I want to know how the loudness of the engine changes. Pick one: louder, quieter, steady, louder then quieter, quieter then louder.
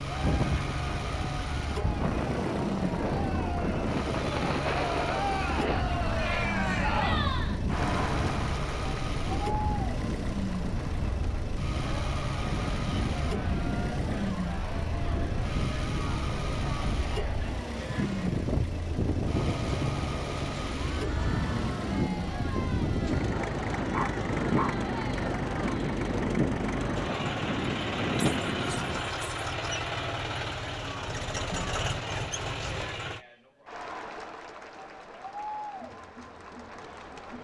steady.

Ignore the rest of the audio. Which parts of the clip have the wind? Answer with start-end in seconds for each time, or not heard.
0.1-29.1.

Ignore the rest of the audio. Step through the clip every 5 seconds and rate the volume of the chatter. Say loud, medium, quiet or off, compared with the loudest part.
medium, loud, medium, medium, medium, medium, medium, medium.